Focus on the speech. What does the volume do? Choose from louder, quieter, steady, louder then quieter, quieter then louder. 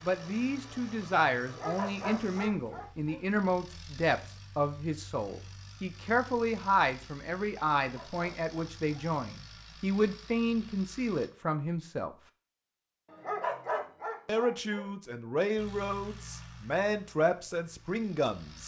steady.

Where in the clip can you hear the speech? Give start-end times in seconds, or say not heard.
0.0-12.2, 14.2-18.6.